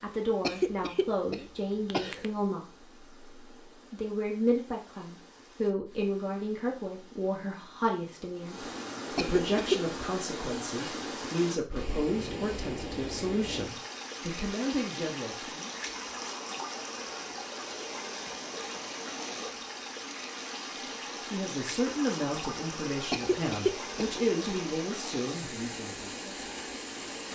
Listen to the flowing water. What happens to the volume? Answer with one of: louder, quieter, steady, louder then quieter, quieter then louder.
louder.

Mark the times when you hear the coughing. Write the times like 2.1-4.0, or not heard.
0.4-2.2, 9.2-9.8, 23.1-24.1.